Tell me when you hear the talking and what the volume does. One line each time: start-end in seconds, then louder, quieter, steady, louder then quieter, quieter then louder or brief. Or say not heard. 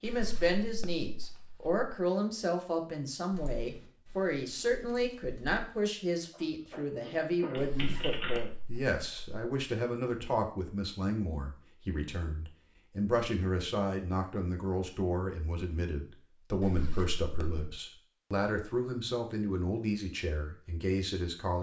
0.0-21.5 steady.